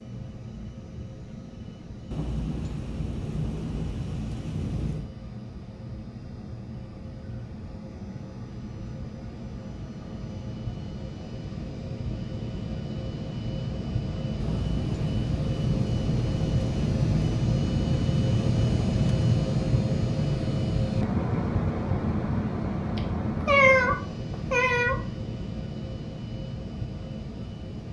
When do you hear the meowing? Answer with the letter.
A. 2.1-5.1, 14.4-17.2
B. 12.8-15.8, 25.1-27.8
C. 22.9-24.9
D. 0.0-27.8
C.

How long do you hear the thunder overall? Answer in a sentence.
The thunder can be heard for 6 seconds in total.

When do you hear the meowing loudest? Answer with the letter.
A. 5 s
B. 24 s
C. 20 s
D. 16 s
B.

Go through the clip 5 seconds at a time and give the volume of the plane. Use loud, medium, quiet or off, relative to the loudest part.
quiet, quiet, medium, loud, loud, medium.